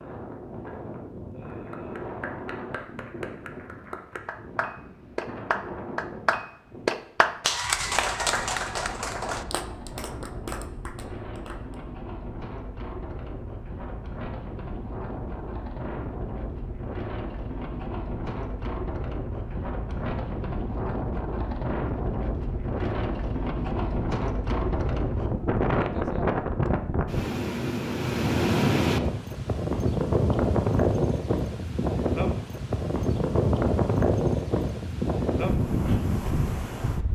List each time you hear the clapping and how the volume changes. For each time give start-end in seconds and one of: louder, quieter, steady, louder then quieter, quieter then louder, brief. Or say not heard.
1.4-11.8 louder then quieter.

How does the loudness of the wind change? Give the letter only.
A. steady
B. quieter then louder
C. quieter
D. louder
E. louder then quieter
D.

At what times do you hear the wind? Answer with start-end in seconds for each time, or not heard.
0.0-37.1.